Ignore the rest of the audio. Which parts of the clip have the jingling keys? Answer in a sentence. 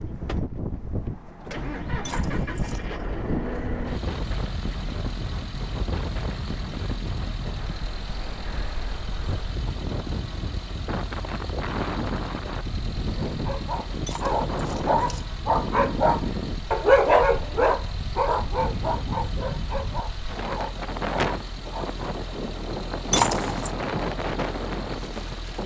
You can hear the jingling keys from 2.0 to 2.9 s, from 14.1 to 15.3 s and from 23.1 to 23.7 s.